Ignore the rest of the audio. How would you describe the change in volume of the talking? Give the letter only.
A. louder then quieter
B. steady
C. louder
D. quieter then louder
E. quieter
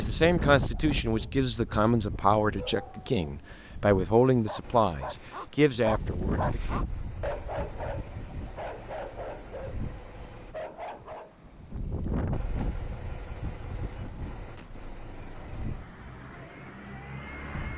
B.